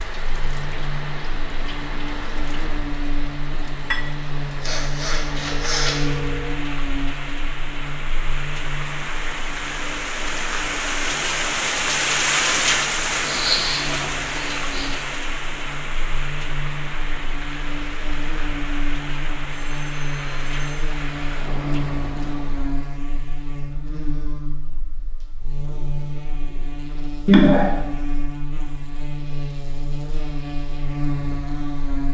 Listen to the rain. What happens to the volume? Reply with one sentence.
The loudness of the rain goes up, then down.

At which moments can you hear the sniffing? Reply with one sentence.
The sniffing can be heard from 4.6 to 6.0 s, from 13.2 to 14.9 s and from 27.2 to 27.7 s.